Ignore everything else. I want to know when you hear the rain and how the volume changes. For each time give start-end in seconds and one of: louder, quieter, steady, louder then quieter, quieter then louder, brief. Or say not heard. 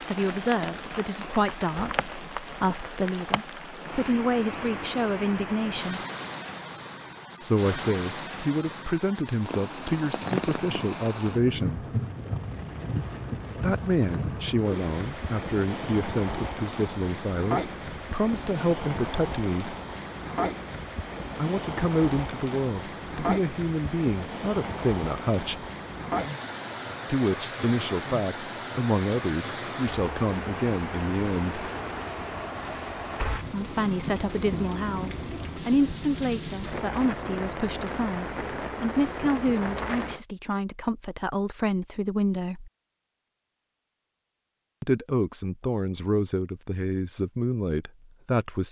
0.0-40.2 steady.